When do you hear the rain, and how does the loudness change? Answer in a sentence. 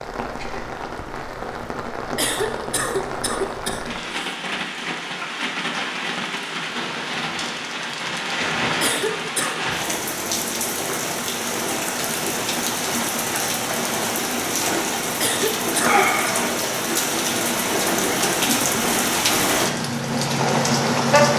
The rain can be heard from 0.0 to 21.3 s, getting louder.